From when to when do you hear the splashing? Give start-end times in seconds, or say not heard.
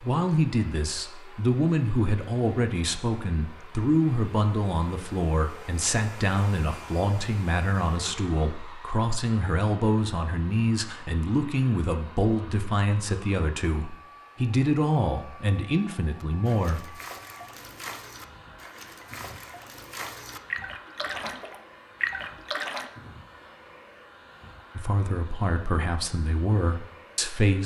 16.4-22.9.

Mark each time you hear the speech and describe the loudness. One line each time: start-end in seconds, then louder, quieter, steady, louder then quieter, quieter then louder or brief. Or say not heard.
0.0-17.0 steady
24.8-27.6 brief.